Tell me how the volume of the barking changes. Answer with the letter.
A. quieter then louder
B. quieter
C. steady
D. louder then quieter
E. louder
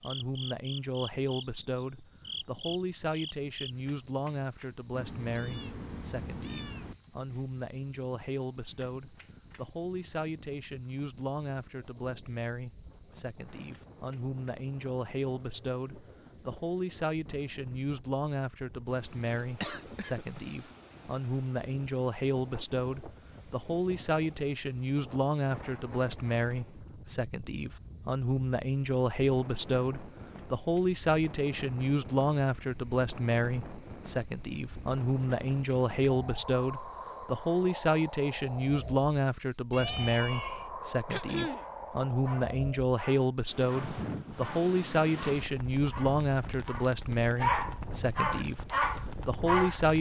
E.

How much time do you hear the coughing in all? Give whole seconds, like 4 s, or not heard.
2 s.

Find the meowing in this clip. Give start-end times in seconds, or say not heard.
4.9-7.0, 39.7-40.7.